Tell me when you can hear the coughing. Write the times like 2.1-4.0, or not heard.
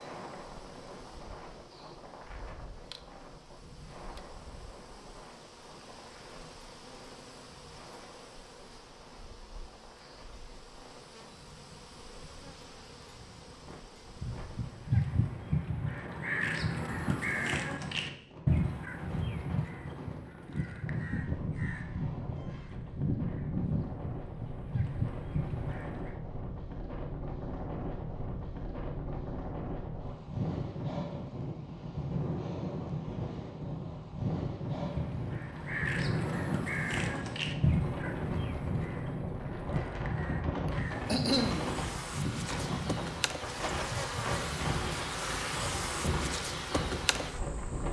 40.6-41.8.